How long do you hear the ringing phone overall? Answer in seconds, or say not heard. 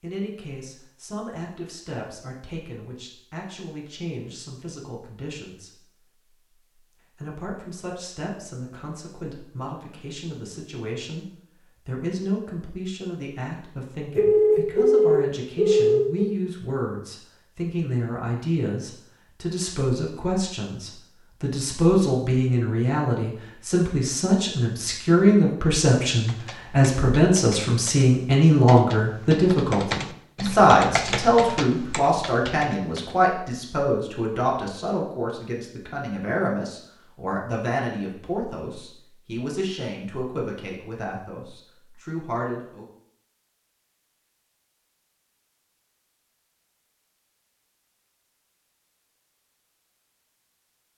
2 s.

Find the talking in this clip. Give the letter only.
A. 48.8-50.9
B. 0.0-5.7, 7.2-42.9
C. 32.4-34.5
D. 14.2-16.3
B.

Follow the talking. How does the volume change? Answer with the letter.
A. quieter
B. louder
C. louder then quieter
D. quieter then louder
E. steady
C.